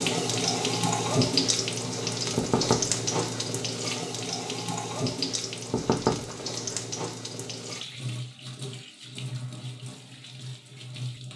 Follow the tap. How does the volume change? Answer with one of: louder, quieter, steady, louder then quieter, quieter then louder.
quieter.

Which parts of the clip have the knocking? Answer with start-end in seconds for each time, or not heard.
2.4-3.5, 5.7-6.8.